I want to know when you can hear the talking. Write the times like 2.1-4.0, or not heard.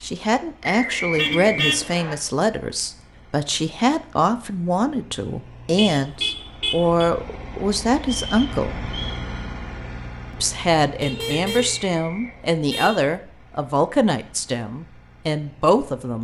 0.0-8.9, 10.3-16.1.